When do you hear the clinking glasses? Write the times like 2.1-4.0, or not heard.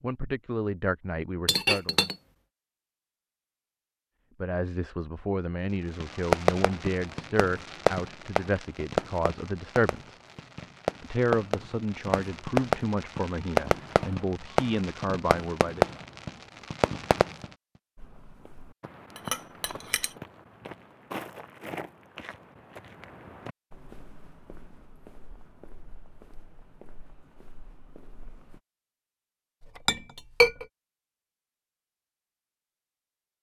1.4-2.1, 19.1-20.1, 29.6-30.6.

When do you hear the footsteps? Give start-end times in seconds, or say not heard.
17.9-28.6.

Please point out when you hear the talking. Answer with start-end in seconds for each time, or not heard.
0.0-1.9, 4.4-10.2, 11.0-15.8.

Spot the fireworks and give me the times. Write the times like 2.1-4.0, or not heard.
6.0-17.5.